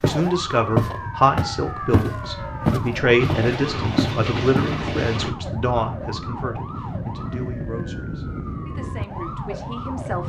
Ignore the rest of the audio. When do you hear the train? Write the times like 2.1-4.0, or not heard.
3.1-5.3.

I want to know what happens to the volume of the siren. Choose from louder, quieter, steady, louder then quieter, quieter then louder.
steady.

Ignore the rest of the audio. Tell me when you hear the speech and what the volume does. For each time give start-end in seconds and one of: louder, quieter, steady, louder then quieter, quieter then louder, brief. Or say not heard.
0.0-10.2 quieter.